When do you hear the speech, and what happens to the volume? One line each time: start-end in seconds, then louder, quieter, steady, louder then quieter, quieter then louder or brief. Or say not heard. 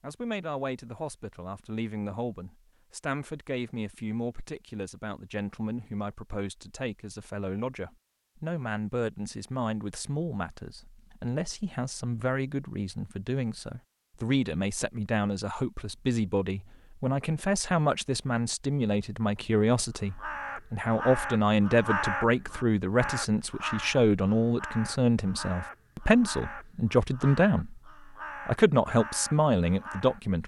0.0-27.8 louder
28.4-30.4 brief.